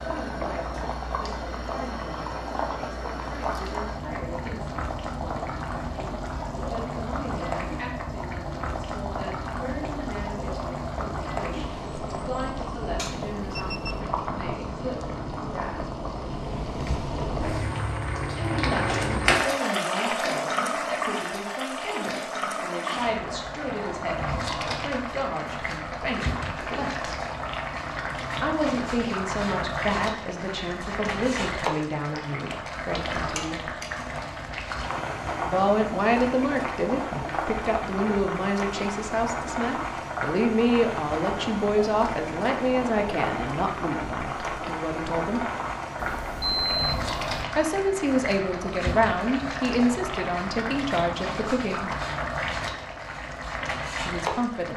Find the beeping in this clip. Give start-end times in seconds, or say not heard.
12.9-14.0, 46.0-47.5.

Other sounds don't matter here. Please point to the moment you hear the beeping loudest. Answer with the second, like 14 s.
47 s.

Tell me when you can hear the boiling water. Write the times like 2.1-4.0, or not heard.
0.0-54.7.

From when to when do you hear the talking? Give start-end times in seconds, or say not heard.
0.0-16.0, 18.4-27.1, 28.4-33.7, 35.5-45.4, 47.5-51.9, 54.0-54.7.